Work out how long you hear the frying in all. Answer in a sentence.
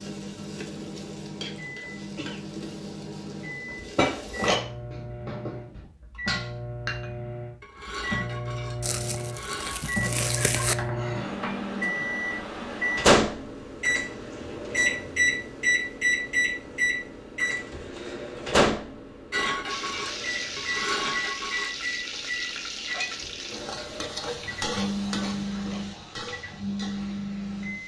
You can hear the frying for 13 seconds altogether.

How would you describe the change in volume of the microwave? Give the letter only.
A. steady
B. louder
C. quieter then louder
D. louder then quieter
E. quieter
D.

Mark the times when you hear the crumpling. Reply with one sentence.
You can hear the crumpling from 8.8 to 10.8 s.